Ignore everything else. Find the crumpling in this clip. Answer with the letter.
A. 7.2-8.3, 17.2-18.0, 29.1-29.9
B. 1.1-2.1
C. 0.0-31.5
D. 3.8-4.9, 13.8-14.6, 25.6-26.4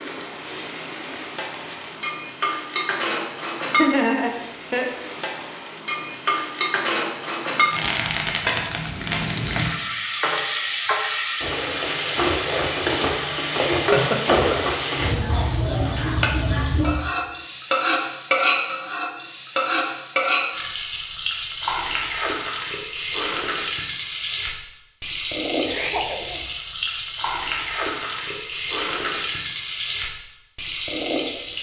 B.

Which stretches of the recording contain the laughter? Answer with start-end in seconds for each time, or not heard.
3.8-4.9, 13.8-14.6, 25.6-26.4.